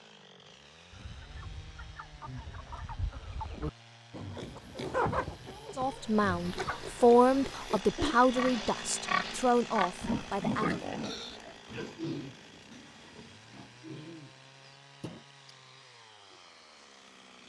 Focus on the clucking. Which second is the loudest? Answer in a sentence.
The volume of the clucking peaks at 5 seconds.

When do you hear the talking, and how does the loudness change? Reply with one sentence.
The talking can be heard from 5.8 to 10.8 s, getting louder then quieter.